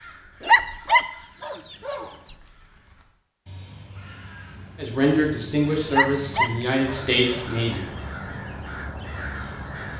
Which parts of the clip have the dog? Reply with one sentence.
You can hear the dog from 0.4 to 2.3 s and from 5.9 to 7.5 s.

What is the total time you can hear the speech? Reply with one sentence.
You can hear the speech for 3 seconds altogether.